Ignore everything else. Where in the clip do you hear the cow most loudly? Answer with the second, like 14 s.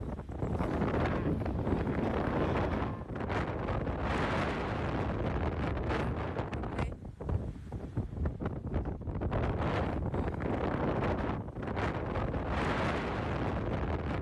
1 s.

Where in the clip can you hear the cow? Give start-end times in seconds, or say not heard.
1.0-3.1.